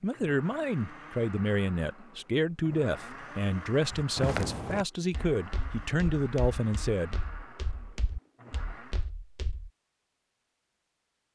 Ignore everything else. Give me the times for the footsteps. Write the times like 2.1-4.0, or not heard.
3.9-9.7.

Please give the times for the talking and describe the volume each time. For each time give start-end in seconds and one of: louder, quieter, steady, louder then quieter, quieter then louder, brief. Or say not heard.
0.0-7.2 steady.